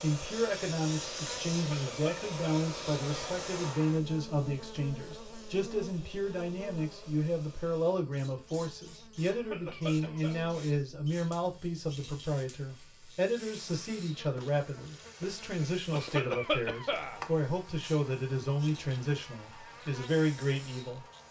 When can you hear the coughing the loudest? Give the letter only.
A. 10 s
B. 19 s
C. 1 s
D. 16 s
D.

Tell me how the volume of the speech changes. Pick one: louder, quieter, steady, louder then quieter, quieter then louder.
steady.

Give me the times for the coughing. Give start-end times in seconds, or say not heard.
1.5-2.7, 9.2-10.4, 15.9-17.2.